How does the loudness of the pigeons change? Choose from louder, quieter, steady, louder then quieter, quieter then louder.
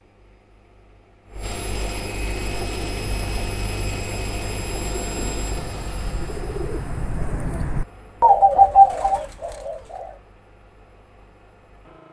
louder.